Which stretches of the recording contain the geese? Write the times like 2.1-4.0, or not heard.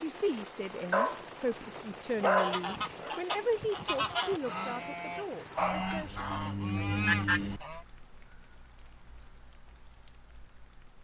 2.4-7.8.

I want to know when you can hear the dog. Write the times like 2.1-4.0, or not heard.
0.9-3.1, 5.5-7.6.